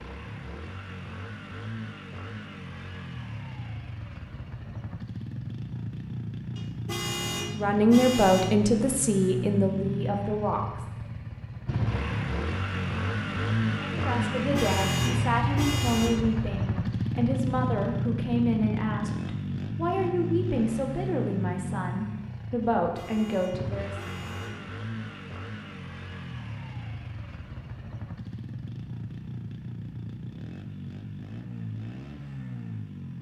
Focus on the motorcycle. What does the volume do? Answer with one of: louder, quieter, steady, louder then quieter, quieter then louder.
louder then quieter.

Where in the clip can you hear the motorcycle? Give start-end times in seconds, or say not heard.
0.0-33.1.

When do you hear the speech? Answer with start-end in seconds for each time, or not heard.
7.5-10.8, 13.8-24.0.